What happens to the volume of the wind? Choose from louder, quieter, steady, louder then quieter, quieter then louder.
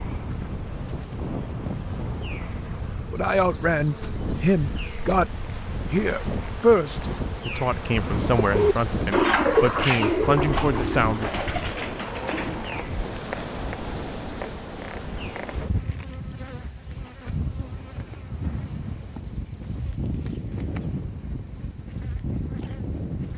steady.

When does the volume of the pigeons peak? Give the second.
9 s.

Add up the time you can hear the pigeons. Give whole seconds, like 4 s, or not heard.
5 s.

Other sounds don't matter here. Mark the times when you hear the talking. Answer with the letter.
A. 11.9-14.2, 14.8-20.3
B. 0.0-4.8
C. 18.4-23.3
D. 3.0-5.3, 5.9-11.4
D.